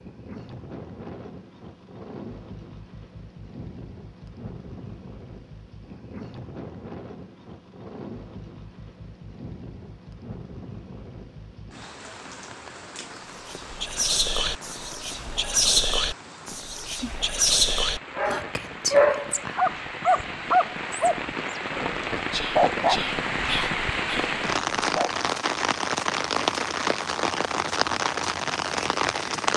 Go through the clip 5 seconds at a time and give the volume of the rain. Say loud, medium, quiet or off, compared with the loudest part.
quiet, quiet, quiet, quiet, loud, loud.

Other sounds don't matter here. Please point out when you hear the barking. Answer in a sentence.
The barking can be heard from 17.6 to 25.2 s.